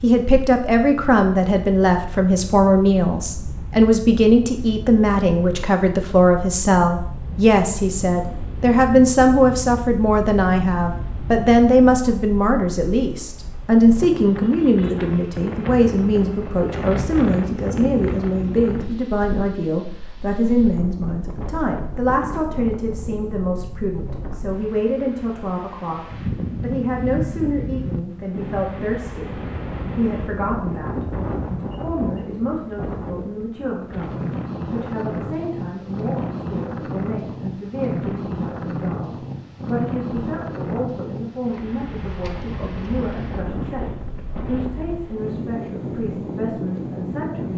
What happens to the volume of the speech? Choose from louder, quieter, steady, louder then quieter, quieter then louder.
quieter.